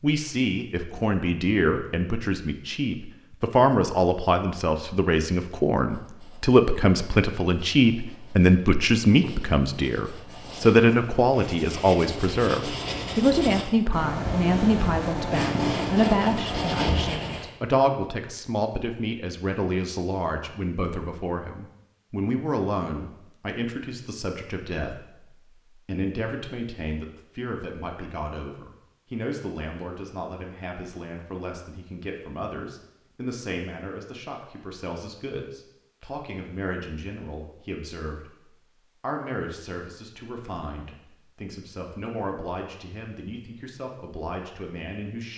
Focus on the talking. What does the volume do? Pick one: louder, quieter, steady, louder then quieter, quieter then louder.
quieter.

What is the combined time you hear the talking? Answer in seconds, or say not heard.
45 s.